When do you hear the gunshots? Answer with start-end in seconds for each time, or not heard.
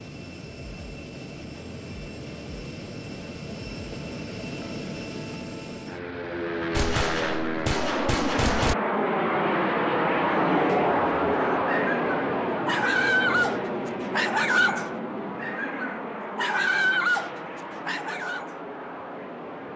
6.7-8.8.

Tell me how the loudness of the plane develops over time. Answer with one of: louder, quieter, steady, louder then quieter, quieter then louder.
louder then quieter.